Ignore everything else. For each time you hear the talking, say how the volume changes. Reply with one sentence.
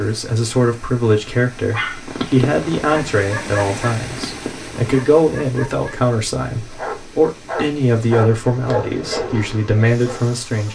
You can hear the talking from 0.0 to 10.7 s, at a steady volume.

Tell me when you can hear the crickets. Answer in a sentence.
The crickets can't be heard in this clip.